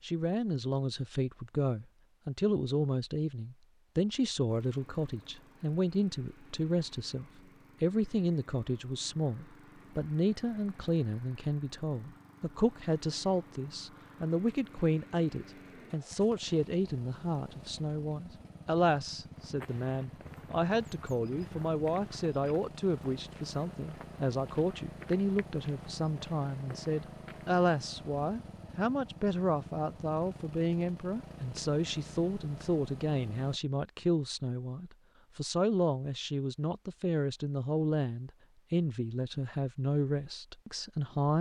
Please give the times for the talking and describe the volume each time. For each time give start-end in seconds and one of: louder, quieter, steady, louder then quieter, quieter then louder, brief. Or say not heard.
0.0-41.3 steady.